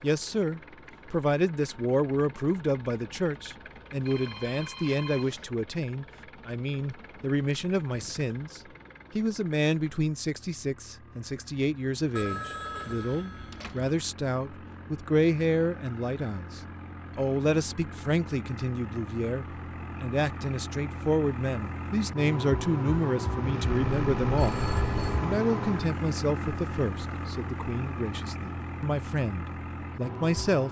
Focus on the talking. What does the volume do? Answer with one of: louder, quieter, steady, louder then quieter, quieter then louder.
steady.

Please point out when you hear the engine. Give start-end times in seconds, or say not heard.
0.0-30.6.